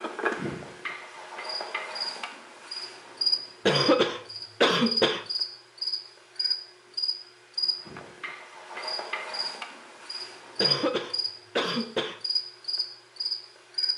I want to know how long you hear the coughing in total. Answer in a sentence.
The coughing can be heard for 3 seconds in total.